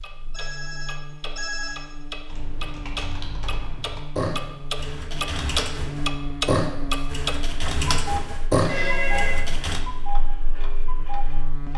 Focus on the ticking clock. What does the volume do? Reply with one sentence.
The loudness of the ticking clock goes up, then down.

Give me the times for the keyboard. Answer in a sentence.
You can hear the keyboard from 2.2 to 9.8 s.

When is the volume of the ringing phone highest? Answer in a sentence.
The volume of the ringing phone peaks at 9 seconds.